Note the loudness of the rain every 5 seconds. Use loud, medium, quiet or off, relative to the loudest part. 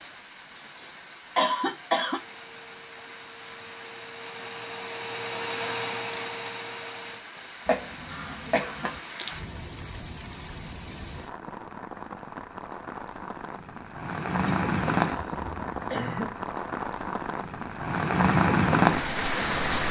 quiet, quiet, medium, loud.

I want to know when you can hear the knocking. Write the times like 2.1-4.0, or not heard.
not heard.